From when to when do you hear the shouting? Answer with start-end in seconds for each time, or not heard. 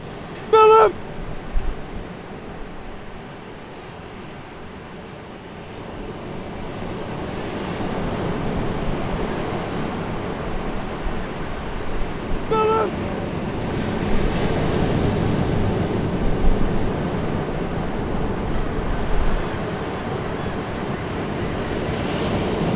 0.5-0.9, 12.5-12.9.